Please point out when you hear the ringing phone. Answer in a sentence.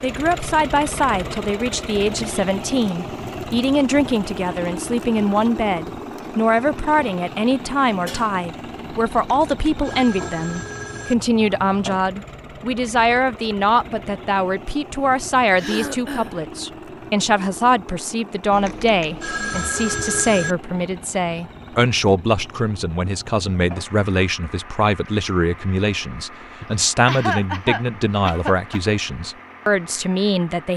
You can hear the ringing phone from 9.2 to 11.2 s and from 18.5 to 20.6 s.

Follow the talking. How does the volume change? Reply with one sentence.
The volume of the talking stays about the same.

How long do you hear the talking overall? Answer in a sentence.
You can hear the talking for 31 seconds altogether.